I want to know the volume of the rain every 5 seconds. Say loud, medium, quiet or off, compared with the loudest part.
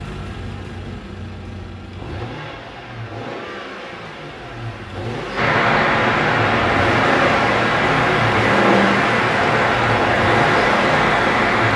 off, loud, loud.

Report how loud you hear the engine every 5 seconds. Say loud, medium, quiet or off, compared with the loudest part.
medium, loud, loud.